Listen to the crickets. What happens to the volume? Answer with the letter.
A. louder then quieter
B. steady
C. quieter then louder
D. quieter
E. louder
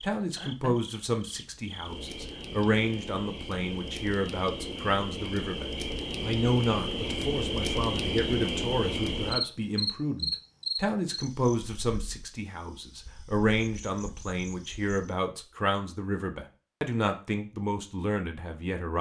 A.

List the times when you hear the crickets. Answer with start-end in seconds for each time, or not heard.
0.0-15.2.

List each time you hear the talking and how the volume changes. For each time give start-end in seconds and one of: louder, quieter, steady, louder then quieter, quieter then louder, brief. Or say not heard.
0.0-18.9 steady.